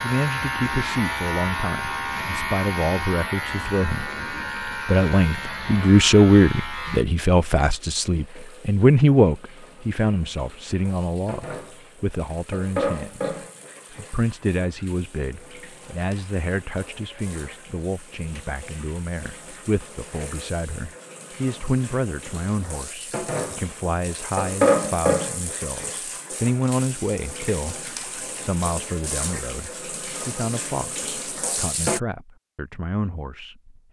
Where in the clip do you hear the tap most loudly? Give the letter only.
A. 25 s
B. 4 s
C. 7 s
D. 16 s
A.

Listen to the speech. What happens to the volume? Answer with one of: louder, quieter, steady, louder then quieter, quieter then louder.
quieter.